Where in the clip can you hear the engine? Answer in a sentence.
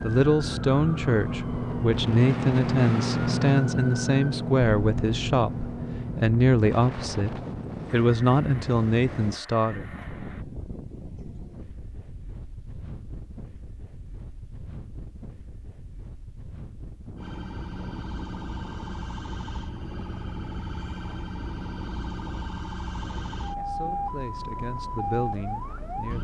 You can hear the engine from 0.1 to 10.4 s.